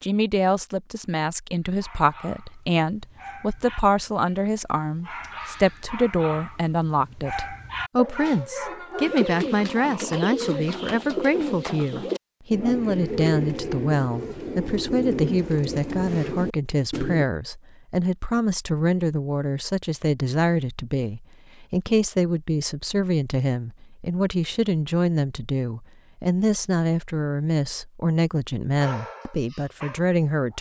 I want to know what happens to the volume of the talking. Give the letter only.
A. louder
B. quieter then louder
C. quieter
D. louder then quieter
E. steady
E.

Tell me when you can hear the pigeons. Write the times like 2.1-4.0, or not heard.
9.1-17.2.